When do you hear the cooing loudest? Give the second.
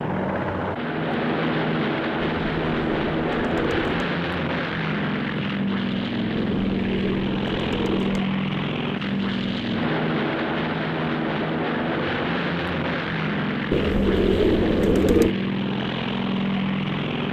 15 s.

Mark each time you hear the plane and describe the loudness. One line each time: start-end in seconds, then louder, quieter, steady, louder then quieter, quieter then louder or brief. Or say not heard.
0.0-17.2 steady.